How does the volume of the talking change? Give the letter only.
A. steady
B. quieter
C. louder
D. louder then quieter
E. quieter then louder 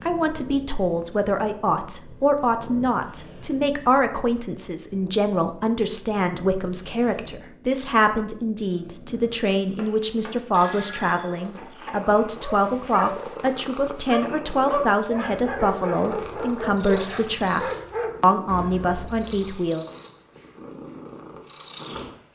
A.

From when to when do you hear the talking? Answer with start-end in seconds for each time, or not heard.
0.0-19.9.